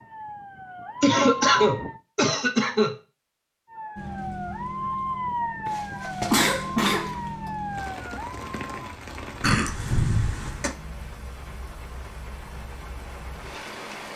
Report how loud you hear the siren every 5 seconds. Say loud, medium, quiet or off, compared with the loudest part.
loud, loud, off.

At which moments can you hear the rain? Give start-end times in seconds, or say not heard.
4.0-14.1.